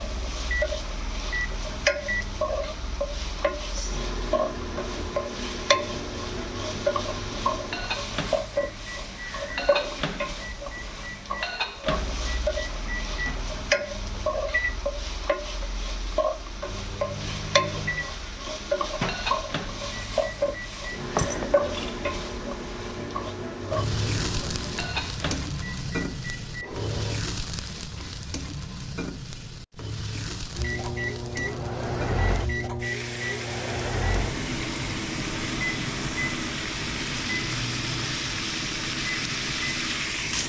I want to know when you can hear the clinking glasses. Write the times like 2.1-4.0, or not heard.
21.1-22.0.